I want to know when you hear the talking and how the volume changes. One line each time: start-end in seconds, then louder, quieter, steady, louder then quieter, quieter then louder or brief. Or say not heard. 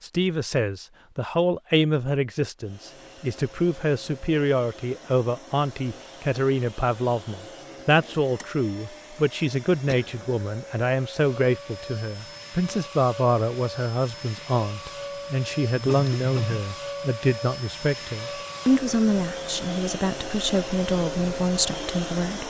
0.0-22.4 steady.